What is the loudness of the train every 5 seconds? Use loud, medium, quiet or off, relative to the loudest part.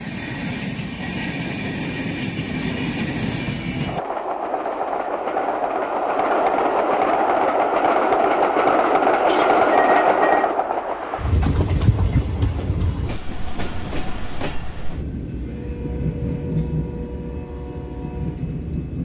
medium, loud, medium, medium.